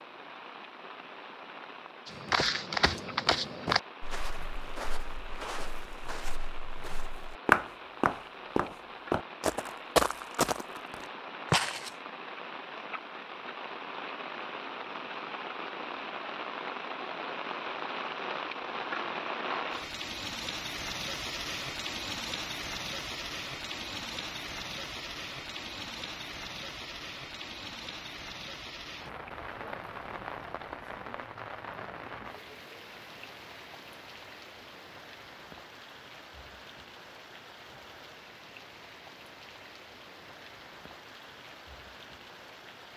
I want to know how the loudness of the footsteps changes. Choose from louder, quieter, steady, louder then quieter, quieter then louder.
quieter then louder.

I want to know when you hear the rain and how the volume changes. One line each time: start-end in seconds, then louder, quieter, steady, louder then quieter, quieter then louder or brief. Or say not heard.
0.0-42.9 louder then quieter.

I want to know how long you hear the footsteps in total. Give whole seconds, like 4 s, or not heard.
10 s.